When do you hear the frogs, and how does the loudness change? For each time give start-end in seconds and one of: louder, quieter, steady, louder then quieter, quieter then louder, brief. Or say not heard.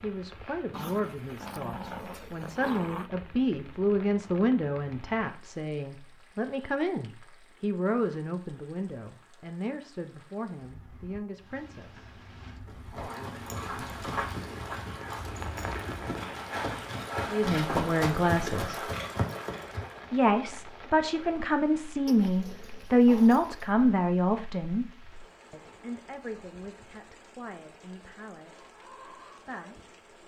not heard.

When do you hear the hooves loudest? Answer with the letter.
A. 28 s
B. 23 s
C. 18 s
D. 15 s
C.